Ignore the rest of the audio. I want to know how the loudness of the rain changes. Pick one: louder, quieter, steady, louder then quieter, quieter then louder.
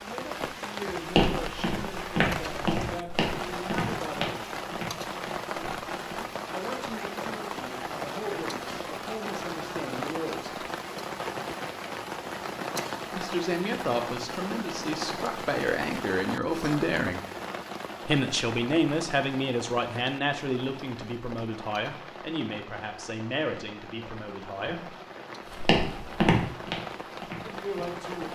quieter.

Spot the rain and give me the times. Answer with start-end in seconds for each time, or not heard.
0.0-28.3.